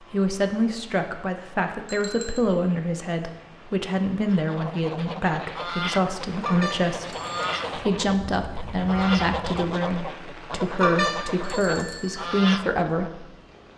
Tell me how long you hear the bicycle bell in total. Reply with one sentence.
You can hear the bicycle bell for 3 seconds altogether.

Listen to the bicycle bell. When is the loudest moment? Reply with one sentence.
The volume of the bicycle bell peaks at 11 seconds.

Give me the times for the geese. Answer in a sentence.
The geese can be heard from 4.3 to 13.2 s.